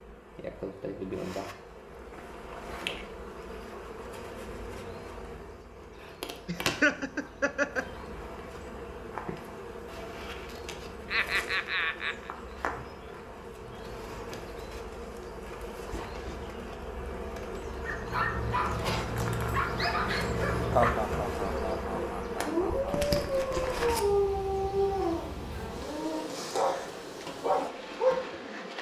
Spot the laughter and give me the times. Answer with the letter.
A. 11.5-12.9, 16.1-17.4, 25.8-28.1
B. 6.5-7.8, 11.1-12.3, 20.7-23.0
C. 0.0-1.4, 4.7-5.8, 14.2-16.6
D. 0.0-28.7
B.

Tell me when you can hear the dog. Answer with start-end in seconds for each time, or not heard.
17.8-28.2.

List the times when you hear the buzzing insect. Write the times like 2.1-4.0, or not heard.
0.0-28.7.